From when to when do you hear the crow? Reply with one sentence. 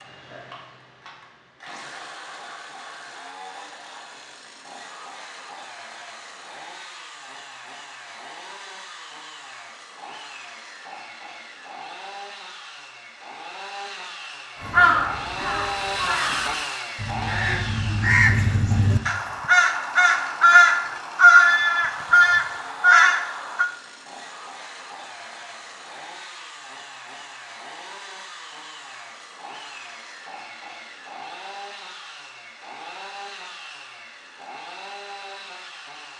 You can hear the crow from 14.6 to 23.6 s.